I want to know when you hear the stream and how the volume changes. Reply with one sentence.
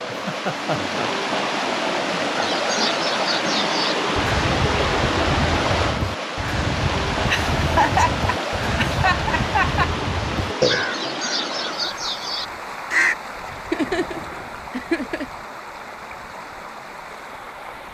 You can hear the stream from 0.0 to 17.9 s, getting quieter.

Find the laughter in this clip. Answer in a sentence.
You can hear the laughter from 0.1 to 1.1 s, from 7.2 to 9.9 s and from 13.5 to 15.2 s.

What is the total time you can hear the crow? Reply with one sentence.
The crow can be heard for 11 seconds in total.